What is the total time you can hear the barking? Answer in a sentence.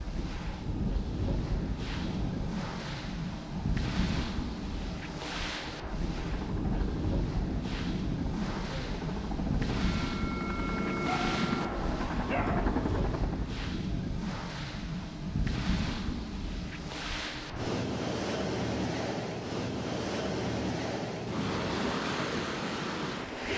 The barking can be heard for 2 seconds in total.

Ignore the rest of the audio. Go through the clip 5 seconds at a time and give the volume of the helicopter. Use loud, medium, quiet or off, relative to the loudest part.
quiet, medium, loud, off, off.